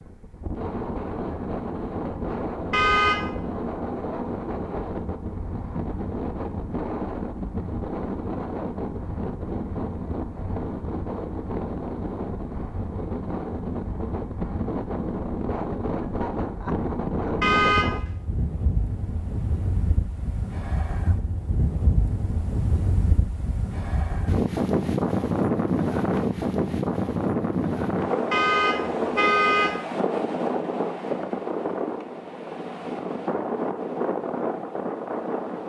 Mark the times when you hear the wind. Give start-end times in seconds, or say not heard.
0.0-35.6.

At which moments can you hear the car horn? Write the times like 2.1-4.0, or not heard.
2.7-3.2, 17.4-18.0, 28.3-29.8.